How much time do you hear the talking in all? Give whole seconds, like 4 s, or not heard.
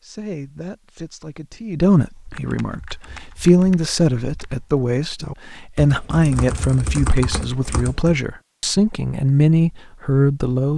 11 s.